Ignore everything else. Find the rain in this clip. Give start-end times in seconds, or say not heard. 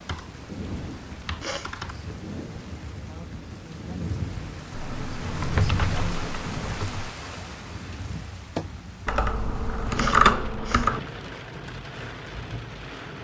0.0-13.1.